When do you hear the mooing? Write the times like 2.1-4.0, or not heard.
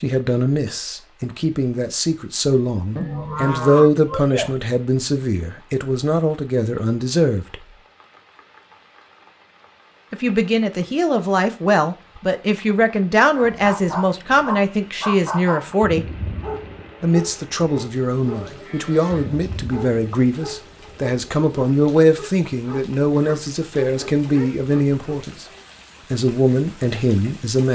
3.0-4.5, 18.3-19.6.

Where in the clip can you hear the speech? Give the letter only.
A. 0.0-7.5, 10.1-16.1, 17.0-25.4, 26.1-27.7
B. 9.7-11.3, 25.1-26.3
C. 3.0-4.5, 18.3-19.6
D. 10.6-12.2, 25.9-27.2
A.